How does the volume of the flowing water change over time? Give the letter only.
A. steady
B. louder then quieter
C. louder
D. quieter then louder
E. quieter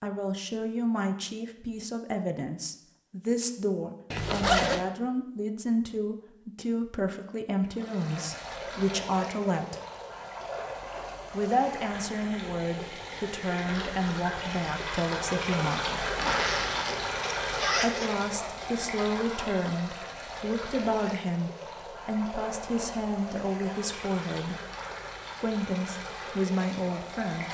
B.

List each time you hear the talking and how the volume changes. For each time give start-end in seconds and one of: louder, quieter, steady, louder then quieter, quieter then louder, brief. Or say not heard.
0.0-9.8 steady
11.3-16.1 steady
17.8-24.6 steady
25.4-27.4 brief.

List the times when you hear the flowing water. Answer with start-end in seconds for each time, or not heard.
7.7-27.4.